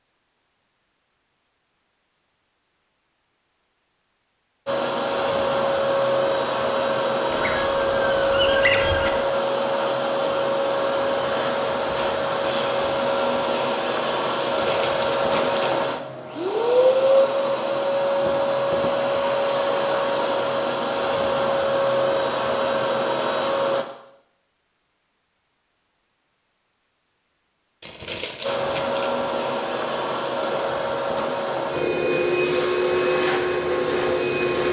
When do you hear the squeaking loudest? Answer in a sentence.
The loudest moment of the squeaking is at 9 seconds.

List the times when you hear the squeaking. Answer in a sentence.
The squeaking can be heard from 7.3 to 9.1 s, from 14.4 to 15.8 s and from 27.9 to 29.1 s.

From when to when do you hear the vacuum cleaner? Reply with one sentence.
The vacuum cleaner can be heard from 4.7 to 23.9 s and from 28.4 to 34.6 s.